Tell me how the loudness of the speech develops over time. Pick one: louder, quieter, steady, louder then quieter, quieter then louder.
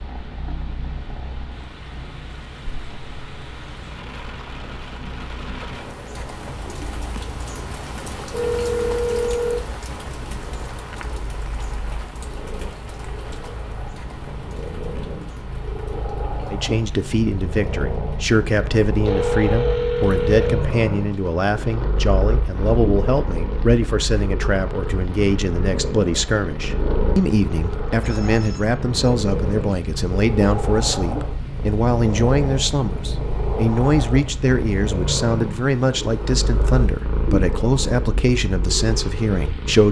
steady.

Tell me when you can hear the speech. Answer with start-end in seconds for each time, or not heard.
16.5-39.8.